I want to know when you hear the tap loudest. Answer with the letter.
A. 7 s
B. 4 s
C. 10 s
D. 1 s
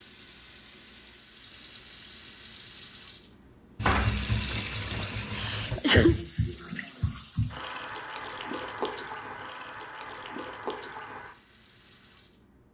B.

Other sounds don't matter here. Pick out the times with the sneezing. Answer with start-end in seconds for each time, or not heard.
5.3-6.2.